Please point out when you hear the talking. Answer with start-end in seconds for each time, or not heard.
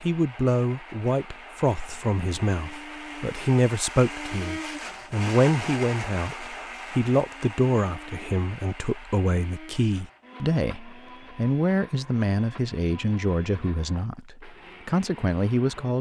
0.0-15.9.